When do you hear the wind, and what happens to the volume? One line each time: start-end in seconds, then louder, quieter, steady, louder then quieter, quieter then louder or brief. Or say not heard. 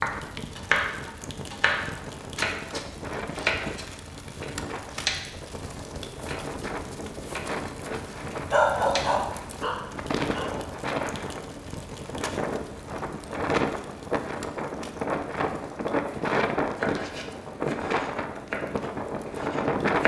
0.0-20.0 louder.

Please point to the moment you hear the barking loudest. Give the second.
9 s.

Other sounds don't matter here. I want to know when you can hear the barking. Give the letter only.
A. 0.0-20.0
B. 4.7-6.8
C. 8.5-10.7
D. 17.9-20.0
C.